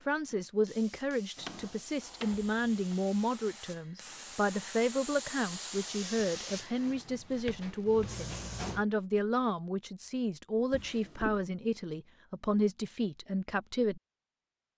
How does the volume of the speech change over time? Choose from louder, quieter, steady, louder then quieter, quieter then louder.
steady.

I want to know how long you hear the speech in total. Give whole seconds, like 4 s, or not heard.
14 s.